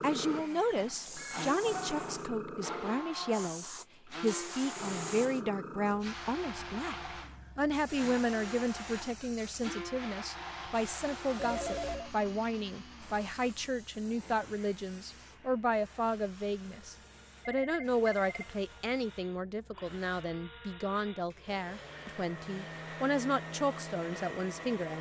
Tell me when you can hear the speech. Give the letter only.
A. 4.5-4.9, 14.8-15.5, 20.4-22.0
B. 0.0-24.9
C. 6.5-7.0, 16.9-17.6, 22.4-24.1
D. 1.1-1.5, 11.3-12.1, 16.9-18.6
B.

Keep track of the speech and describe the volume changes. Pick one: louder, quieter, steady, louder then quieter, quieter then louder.
steady.